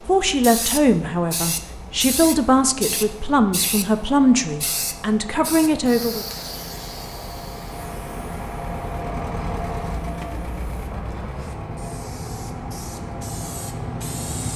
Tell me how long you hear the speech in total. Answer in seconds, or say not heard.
6 s.